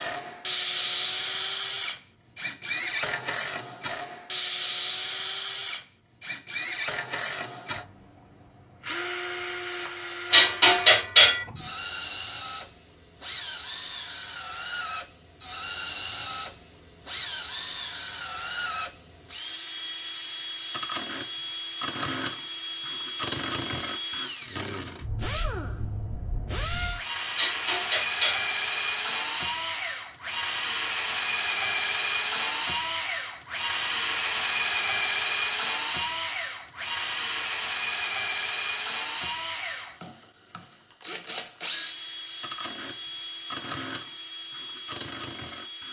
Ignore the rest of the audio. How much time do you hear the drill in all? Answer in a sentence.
The drill can be heard for 46 seconds in total.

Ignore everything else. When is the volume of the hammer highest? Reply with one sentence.
The loudest moment of the hammer is at 11 seconds.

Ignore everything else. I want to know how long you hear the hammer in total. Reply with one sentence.
The hammer can be heard for 2 seconds in total.